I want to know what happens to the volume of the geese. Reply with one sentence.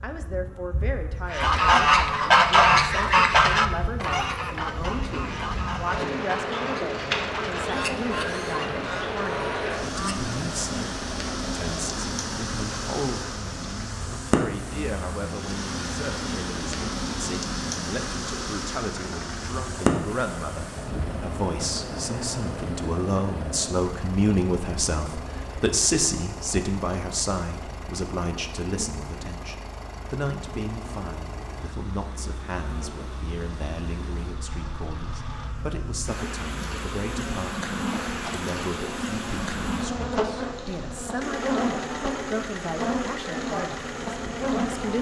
The volume of the geese goes down.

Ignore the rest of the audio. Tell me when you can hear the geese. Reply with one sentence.
You can hear the geese from 1.3 to 10.3 s.